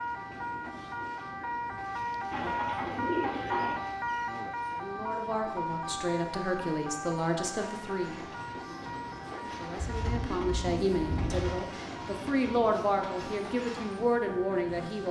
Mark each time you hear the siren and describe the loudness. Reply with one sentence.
You can hear the siren from 0.0 to 15.0 s, getting quieter.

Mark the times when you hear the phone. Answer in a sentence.
The phone can't be heard in this clip.